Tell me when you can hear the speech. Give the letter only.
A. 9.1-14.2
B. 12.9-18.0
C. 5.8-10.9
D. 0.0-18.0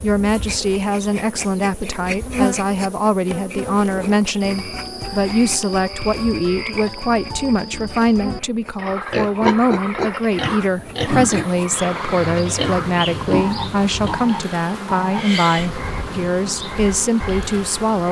D.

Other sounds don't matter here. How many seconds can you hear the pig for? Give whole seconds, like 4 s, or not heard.
5 s.